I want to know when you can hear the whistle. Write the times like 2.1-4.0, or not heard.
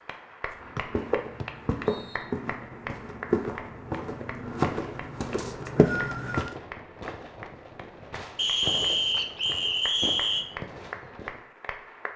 1.4-2.2, 5.3-6.5, 8.3-10.4.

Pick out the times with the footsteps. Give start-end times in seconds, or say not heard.
0.5-6.5.